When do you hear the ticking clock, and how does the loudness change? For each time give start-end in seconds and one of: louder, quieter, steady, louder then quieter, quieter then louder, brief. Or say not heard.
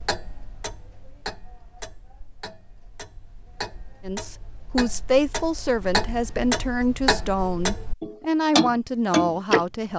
0.0-9.7 louder.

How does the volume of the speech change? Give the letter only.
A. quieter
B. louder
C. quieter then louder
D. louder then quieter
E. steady
E.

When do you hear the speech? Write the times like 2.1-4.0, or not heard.
4.0-9.9.